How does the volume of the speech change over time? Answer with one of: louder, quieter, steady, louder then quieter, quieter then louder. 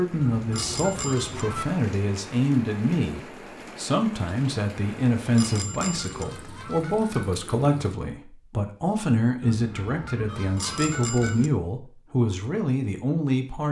steady.